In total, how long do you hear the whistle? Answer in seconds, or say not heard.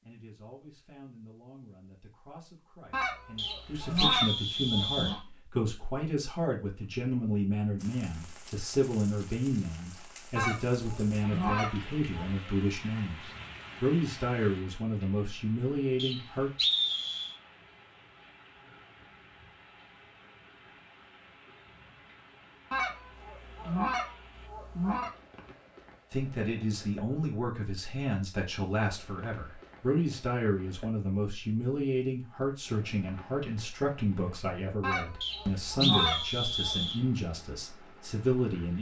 5 s.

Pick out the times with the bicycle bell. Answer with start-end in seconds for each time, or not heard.
not heard.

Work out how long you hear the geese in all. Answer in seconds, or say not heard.
9 s.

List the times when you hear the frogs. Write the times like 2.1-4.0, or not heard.
not heard.